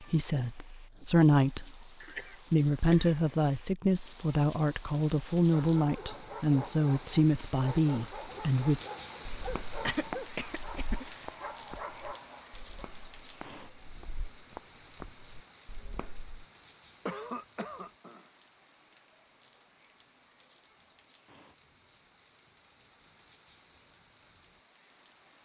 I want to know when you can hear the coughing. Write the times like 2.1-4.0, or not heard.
2.0-3.2, 9.8-11.2, 17.1-18.3.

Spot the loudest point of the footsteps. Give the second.
10 s.